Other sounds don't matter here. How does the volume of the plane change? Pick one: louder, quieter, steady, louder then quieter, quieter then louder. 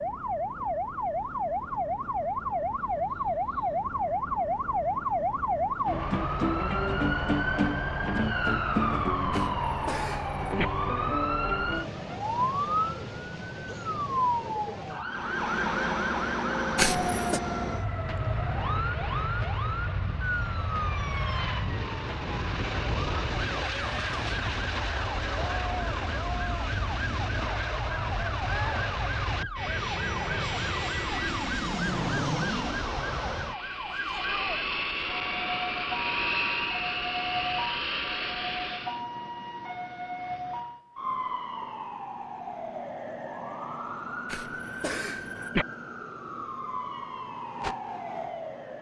steady.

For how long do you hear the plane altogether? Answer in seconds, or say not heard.
24 s.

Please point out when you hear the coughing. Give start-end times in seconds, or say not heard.
9.3-10.7, 16.8-17.4, 44.2-45.6.